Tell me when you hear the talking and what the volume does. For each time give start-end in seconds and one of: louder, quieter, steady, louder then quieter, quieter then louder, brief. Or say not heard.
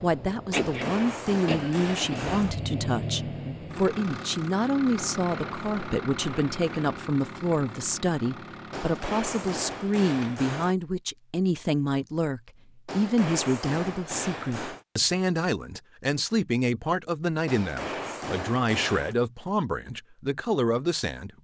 0.0-21.3 steady.